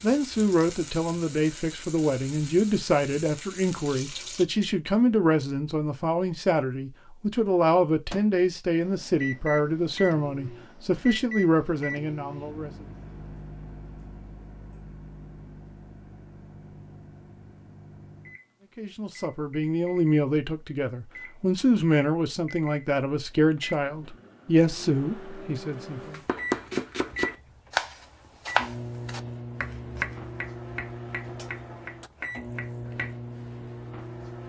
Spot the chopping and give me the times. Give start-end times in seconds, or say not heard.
26.1-33.1.